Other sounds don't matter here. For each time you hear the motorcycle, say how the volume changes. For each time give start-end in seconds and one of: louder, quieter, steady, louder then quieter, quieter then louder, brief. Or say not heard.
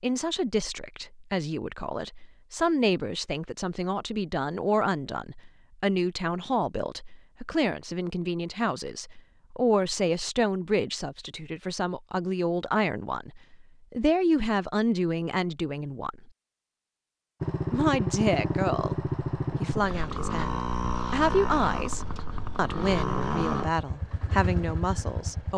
17.4-25.5 quieter.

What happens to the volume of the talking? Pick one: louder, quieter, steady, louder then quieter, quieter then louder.
steady.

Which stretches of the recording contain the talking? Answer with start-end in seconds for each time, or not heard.
0.0-16.3, 17.7-25.5.